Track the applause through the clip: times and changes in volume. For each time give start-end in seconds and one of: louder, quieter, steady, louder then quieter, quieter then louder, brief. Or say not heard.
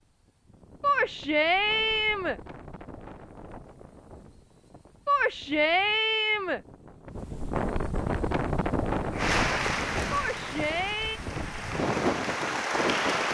9.1-13.3 quieter then louder.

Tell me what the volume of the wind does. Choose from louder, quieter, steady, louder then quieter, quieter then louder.
louder.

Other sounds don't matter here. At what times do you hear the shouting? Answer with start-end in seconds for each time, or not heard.
0.8-2.4, 5.0-6.6, 10.1-11.2.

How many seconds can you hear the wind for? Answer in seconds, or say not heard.
13 s.